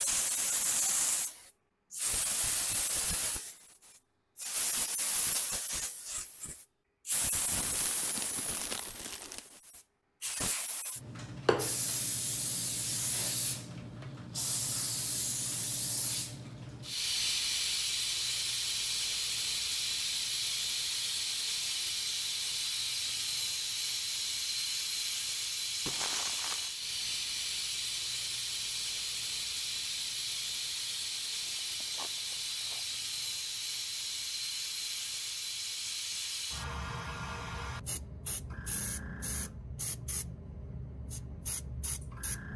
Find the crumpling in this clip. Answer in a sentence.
The crumpling can be heard from 7.5 to 9.6 s, from 25.9 to 26.7 s and from 31.4 to 32.9 s.